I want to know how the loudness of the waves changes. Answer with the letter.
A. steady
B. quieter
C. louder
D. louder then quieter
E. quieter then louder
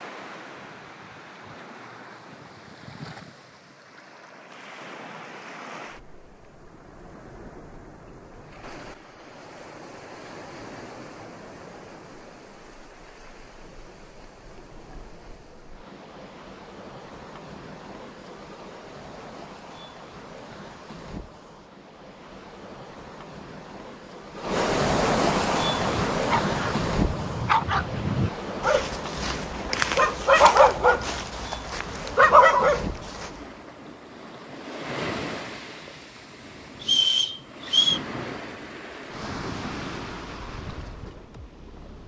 D.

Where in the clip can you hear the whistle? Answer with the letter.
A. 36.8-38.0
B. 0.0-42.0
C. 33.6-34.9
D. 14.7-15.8
A.